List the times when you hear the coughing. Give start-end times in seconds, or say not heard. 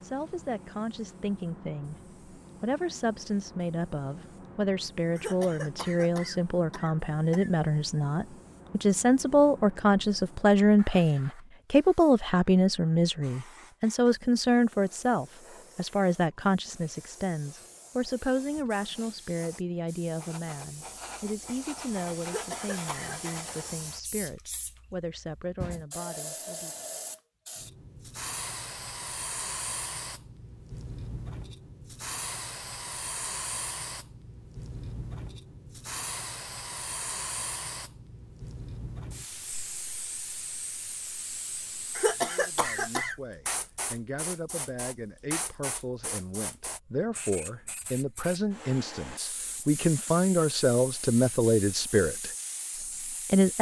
5.2-7.5, 22.2-23.4, 42.0-43.1.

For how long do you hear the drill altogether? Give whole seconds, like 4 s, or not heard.
not heard.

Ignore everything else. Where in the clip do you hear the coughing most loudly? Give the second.
42 s.